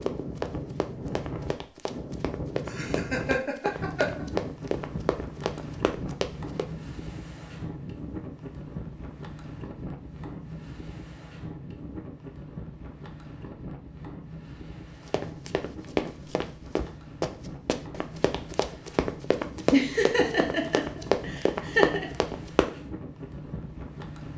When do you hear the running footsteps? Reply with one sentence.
The running footsteps can be heard from 0.0 to 6.7 s and from 15.1 to 22.7 s.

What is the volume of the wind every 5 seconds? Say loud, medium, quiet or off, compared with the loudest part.
loud, loud, medium, medium, medium.